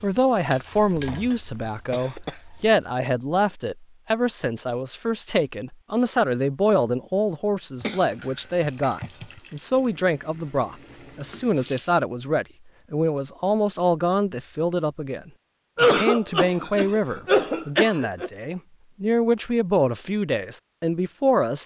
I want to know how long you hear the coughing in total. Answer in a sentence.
The coughing can be heard for 6 seconds in total.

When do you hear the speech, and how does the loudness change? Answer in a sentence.
You can hear the speech from 0.0 to 21.6 s, at a steady volume.